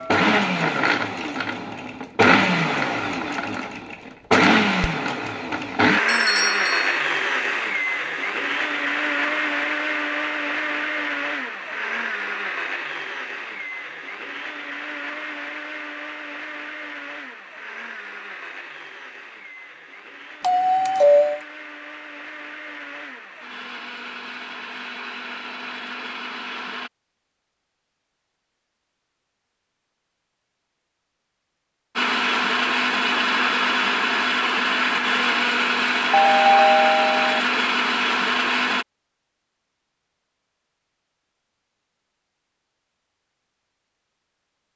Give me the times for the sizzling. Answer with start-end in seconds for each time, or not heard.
not heard.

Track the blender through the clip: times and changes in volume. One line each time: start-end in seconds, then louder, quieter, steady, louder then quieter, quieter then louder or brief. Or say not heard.
0.0-26.9 quieter
31.9-38.9 steady.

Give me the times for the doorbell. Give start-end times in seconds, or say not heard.
6.0-7.0, 20.4-21.4, 36.1-37.4.